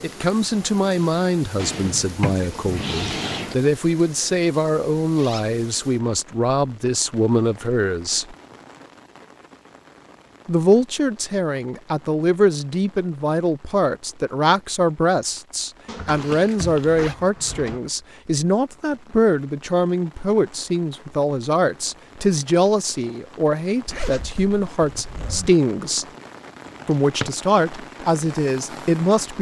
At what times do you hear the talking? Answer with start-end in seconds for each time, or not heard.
0.0-8.3, 10.4-26.1, 26.9-29.3.